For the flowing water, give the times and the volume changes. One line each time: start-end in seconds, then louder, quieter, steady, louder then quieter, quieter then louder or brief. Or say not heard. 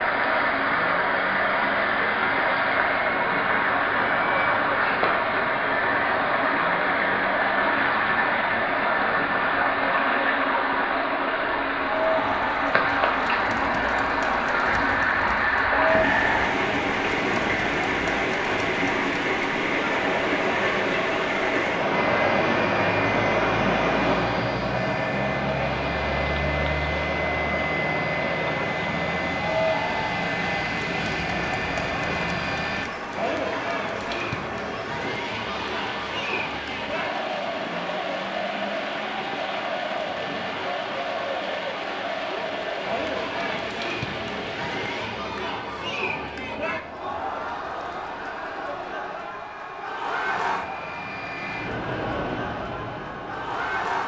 0.0-45.3 quieter.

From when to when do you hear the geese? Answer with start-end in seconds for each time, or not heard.
14.7-16.4.